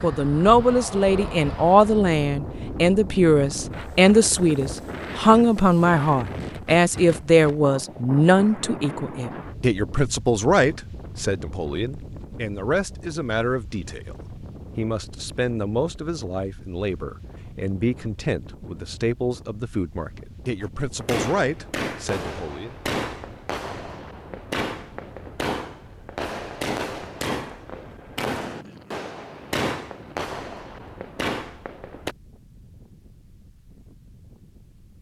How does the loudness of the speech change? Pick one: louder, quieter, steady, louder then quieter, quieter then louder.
quieter.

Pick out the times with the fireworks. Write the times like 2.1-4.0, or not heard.
20.6-32.1.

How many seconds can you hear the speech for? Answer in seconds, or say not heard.
23 s.